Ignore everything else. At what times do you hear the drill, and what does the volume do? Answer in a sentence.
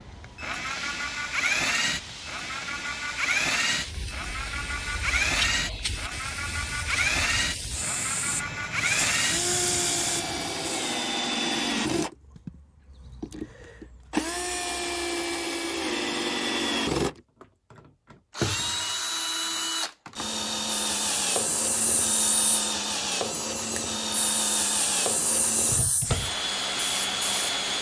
The drill can be heard from 0.0 to 27.7 s, at a steady volume.